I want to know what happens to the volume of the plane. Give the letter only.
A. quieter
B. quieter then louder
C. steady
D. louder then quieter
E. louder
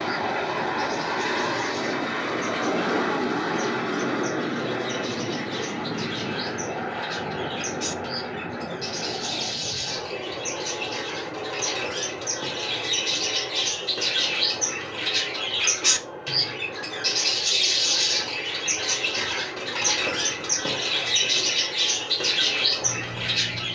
A.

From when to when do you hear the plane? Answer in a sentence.
The plane can be heard from 0.0 to 23.6 s.